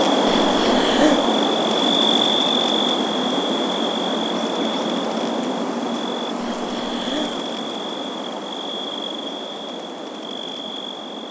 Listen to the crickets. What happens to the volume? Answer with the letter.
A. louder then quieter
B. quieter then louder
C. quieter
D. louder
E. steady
C.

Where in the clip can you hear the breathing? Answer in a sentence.
You can hear the breathing from 0.2 to 1.2 s and from 6.3 to 7.4 s.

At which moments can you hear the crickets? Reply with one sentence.
The crickets can be heard from 0.0 to 11.2 s.